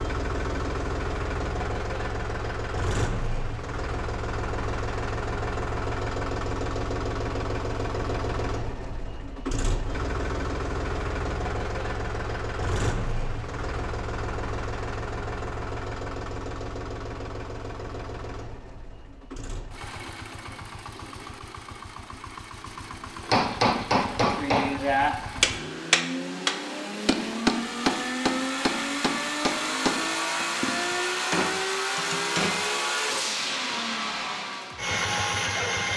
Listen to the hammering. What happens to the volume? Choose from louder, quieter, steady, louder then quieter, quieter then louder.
quieter.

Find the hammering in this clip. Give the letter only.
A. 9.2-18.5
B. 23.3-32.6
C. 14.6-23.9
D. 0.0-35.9
B.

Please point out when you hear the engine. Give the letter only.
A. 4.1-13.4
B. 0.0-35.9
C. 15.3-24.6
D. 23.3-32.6
B.